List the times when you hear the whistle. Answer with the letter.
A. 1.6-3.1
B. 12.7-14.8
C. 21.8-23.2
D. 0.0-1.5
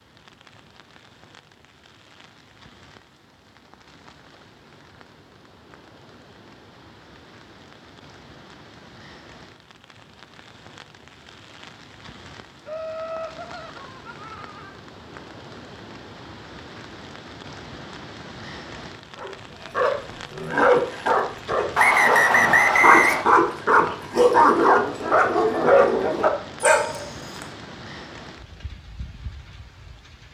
C.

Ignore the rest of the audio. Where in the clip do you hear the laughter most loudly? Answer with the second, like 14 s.
13 s.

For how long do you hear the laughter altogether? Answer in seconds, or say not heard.
2 s.